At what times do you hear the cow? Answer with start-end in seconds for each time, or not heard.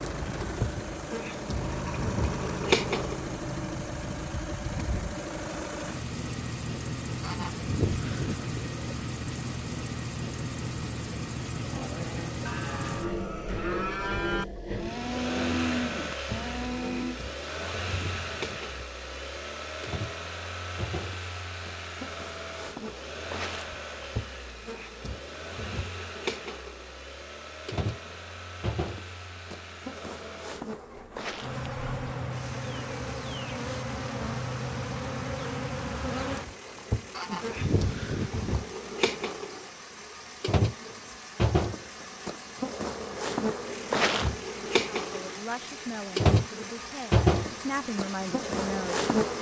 11.7-17.2.